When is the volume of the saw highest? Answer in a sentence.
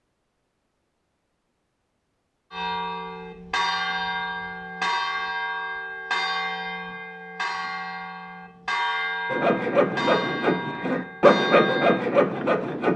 The loudest moment of the saw is at 11 seconds.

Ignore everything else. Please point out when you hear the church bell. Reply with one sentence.
The church bell can be heard from 2.5 to 12.0 s.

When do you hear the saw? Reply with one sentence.
The saw can be heard from 9.3 to 12.9 s.